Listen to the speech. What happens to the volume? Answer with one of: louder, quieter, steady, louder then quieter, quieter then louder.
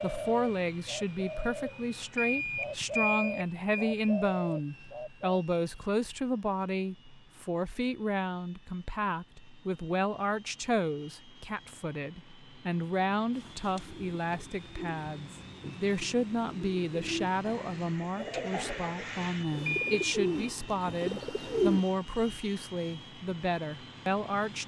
steady.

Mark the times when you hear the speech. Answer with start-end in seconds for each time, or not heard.
0.0-24.6.